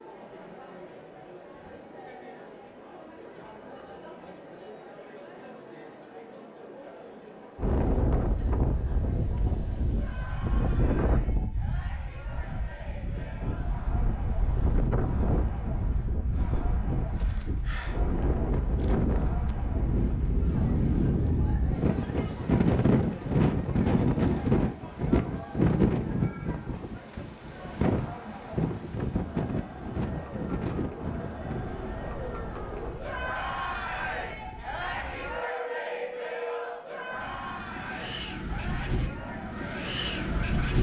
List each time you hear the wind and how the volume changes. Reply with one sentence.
You can hear the wind from 7.5 to 40.7 s, getting louder then quieter.